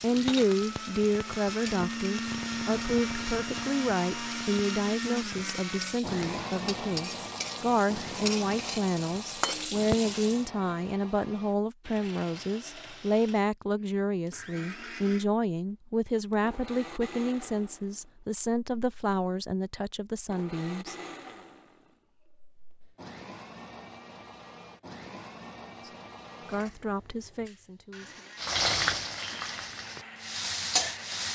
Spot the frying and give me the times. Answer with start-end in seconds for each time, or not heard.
0.0-10.4, 28.4-31.3.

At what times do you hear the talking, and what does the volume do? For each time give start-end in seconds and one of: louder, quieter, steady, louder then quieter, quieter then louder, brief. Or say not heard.
0.0-20.9 steady
25.8-28.2 brief.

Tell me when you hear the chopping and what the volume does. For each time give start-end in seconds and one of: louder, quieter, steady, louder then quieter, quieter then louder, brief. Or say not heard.
not heard.